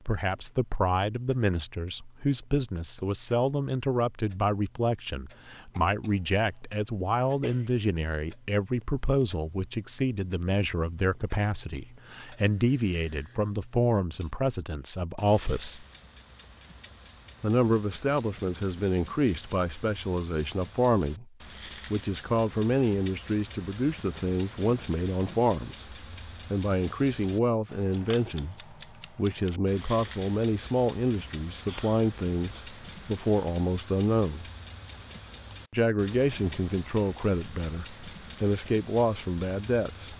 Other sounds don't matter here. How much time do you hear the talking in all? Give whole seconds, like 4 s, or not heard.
37 s.